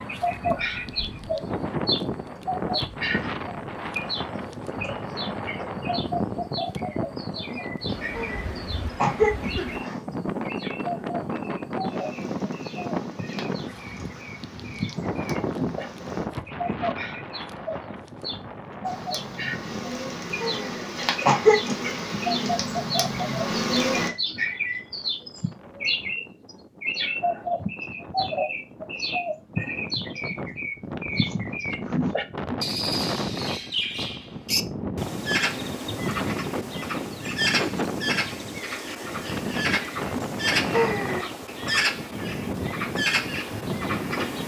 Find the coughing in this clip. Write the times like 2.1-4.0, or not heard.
8.2-10.0, 20.4-21.9, 40.7-41.2.